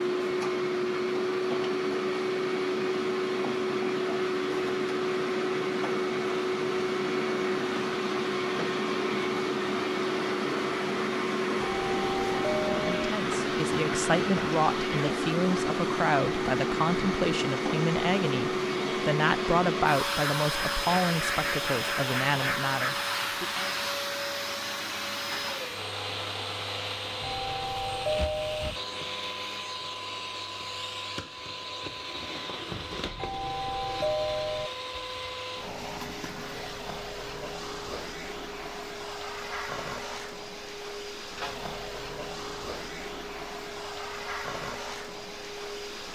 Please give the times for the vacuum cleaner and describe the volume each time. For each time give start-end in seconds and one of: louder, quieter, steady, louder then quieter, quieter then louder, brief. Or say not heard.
0.0-46.1 quieter.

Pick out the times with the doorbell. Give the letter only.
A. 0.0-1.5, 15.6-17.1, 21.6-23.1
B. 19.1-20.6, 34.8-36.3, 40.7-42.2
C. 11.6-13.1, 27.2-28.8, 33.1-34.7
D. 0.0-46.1
C.